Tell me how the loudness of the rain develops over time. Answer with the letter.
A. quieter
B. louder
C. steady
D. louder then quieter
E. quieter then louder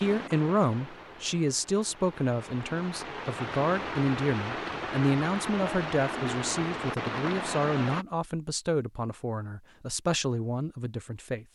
B.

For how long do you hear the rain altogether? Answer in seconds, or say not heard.
8 s.